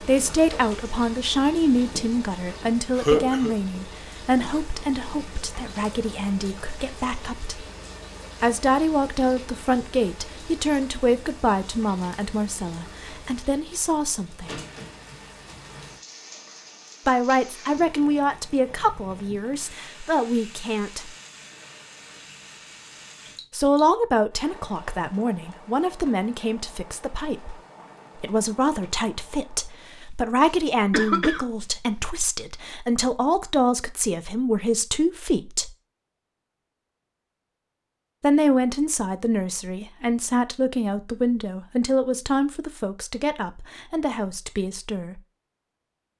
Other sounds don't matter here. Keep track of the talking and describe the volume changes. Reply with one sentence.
The volume of the talking stays about the same.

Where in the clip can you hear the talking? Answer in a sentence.
You can hear the talking from 0.0 to 7.7 s, from 8.4 to 14.6 s, from 17.1 to 21.1 s, from 23.5 to 27.6 s, from 28.2 to 35.7 s and from 38.2 to 45.2 s.